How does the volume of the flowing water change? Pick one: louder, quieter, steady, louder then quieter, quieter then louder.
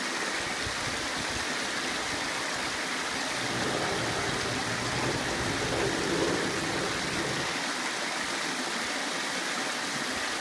steady.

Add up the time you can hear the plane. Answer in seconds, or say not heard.
4 s.